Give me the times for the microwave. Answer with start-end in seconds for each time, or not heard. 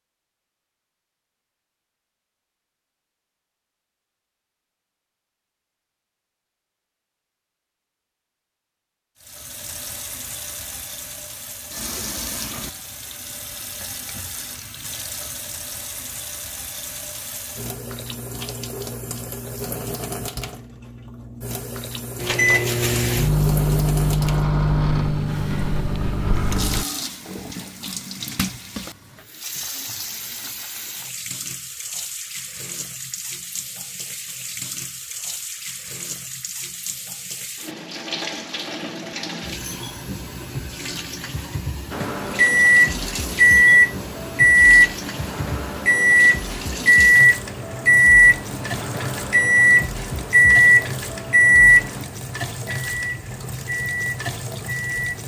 22.1-26.9, 41.9-55.2.